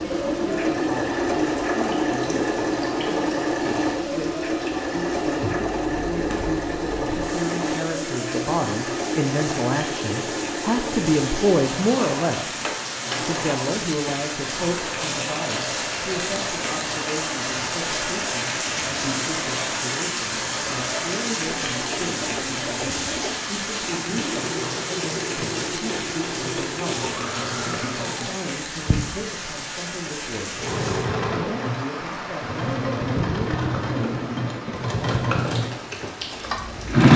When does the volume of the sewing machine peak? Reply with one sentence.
The loudest moment of the sewing machine is at 37 seconds.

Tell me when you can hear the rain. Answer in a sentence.
You can hear the rain from 0.0 to 37.1 s.